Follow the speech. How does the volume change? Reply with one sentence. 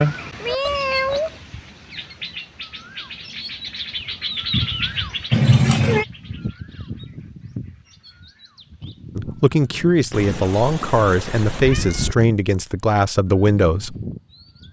The loudness of the speech stays about the same.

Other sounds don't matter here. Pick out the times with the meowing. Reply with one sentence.
You can hear the meowing from 0.3 to 1.4 s, from 5.3 to 6.0 s and from 10.1 to 12.2 s.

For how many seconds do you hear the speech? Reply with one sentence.
You can hear the speech for 5 seconds altogether.